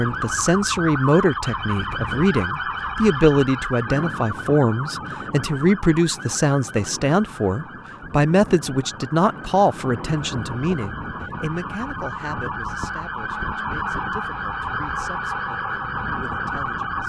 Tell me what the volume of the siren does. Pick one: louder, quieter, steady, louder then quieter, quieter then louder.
quieter then louder.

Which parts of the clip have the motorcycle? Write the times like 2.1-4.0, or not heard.
not heard.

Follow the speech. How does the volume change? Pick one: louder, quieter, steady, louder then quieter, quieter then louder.
quieter.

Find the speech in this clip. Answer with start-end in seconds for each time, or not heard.
0.0-17.0.